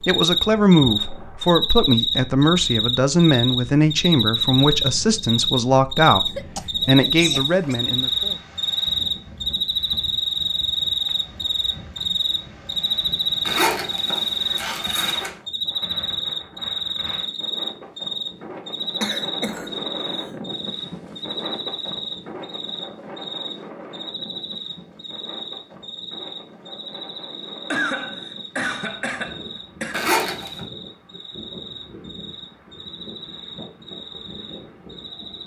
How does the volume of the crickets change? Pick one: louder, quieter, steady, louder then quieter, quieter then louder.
quieter.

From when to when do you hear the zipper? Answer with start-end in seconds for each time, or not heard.
13.4-15.3, 29.9-30.6.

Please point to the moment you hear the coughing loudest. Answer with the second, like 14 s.
28 s.